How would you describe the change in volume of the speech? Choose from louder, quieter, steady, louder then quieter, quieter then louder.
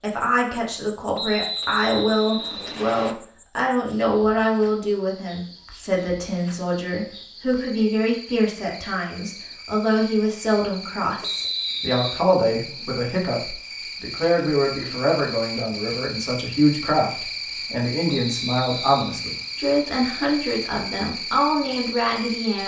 steady.